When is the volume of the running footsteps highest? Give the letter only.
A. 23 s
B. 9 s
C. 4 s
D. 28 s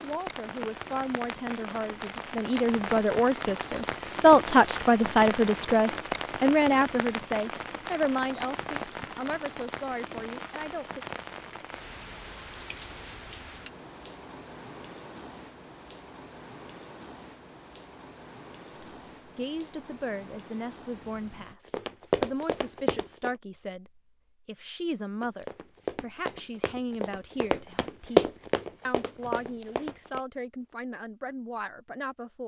D.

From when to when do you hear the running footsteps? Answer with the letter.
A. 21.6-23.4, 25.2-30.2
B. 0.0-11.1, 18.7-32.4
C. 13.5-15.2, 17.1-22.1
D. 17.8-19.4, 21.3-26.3
A.